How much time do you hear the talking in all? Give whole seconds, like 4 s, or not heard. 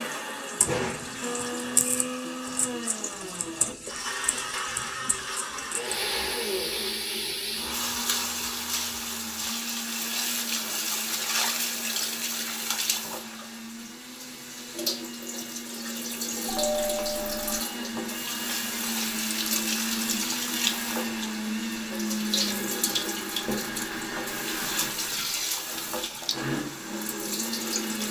not heard.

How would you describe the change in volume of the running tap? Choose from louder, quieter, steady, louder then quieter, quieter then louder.
steady.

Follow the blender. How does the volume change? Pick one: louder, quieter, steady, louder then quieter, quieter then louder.
quieter then louder.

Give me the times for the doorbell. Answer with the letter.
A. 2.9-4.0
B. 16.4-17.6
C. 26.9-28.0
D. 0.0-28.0
B.